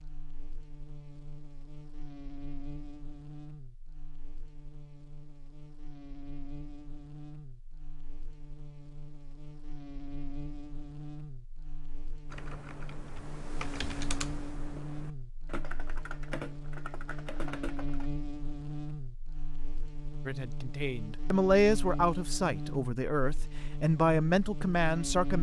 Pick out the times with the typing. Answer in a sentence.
The typing can be heard from 12.2 to 18.1 s.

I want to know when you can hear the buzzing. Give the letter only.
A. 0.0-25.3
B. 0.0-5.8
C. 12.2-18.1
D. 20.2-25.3
A.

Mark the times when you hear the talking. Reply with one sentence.
You can hear the talking from 20.2 to 25.3 s.